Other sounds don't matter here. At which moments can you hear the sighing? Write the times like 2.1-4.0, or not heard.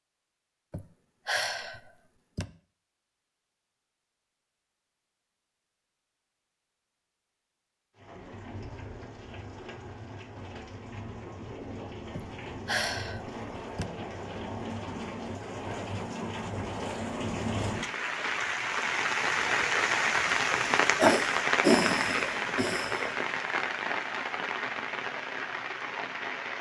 0.7-2.5, 12.2-13.9, 20.8-23.1.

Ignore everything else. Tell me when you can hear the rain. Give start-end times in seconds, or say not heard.
8.0-26.5.